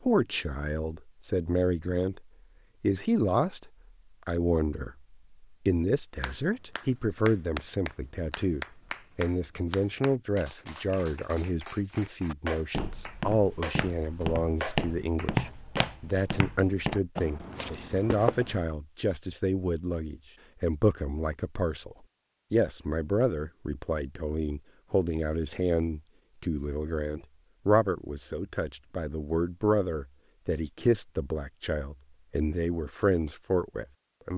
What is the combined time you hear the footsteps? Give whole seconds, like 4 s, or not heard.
6 s.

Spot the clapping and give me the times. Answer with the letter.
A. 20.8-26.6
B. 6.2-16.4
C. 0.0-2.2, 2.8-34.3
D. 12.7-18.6
B.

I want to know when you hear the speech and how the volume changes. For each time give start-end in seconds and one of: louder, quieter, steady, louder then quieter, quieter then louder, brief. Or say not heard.
0.0-2.2 brief
2.8-34.3 steady.